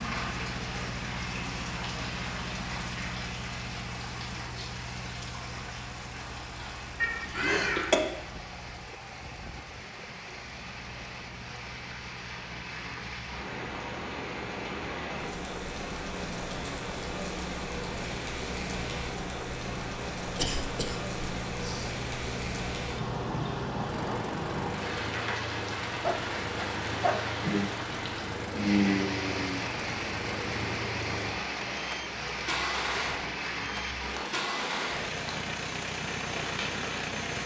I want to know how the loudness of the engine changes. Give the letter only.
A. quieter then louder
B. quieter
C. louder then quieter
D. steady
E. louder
A.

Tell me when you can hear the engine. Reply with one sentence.
You can hear the engine from 0.0 to 37.4 s.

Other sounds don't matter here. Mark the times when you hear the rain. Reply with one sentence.
The rain can be heard from 0.0 to 37.4 s.